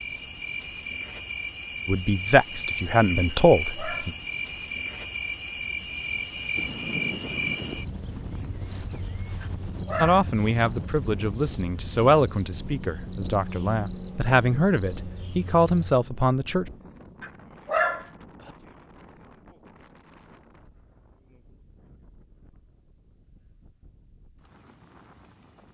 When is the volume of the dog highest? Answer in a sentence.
The loudest moment of the dog is at 18 seconds.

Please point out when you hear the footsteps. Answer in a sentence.
You can't hear the footsteps here.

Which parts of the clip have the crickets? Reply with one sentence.
The crickets can be heard from 0.0 to 15.9 s.